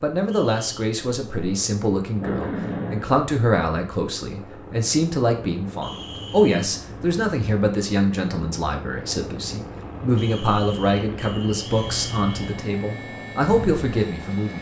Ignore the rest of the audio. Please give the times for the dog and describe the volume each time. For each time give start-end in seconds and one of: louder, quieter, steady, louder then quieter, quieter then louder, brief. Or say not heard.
not heard.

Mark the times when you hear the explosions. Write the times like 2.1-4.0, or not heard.
2.2-3.2.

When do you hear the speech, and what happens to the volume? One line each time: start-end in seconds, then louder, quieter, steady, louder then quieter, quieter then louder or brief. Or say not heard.
0.0-14.5 steady.